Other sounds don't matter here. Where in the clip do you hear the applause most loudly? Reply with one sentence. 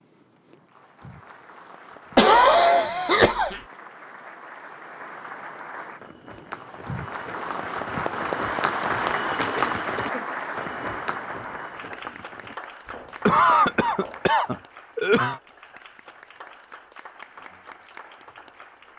The volume of the applause peaks at 9 seconds.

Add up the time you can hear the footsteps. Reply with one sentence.
You can hear the footsteps for 8 seconds altogether.